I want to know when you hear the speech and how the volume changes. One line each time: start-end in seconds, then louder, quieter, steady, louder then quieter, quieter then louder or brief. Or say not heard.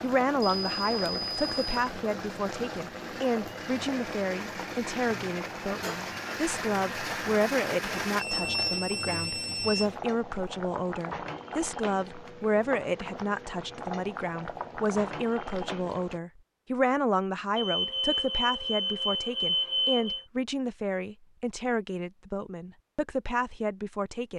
0.0-24.3 steady.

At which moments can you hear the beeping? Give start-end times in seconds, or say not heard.
0.5-1.9, 8.2-9.9, 17.6-20.2.